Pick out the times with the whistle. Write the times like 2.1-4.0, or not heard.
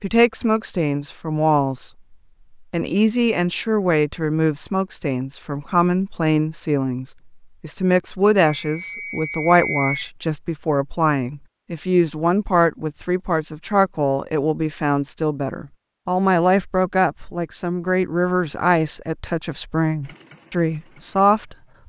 8.7-10.1.